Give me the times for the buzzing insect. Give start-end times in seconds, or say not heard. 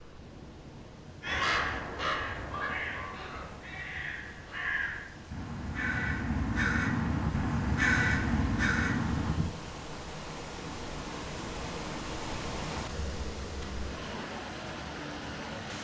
not heard.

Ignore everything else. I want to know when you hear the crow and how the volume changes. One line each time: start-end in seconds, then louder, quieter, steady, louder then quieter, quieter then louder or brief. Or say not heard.
1.2-9.4 quieter then louder.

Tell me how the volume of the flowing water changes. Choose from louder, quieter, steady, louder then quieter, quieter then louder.
louder.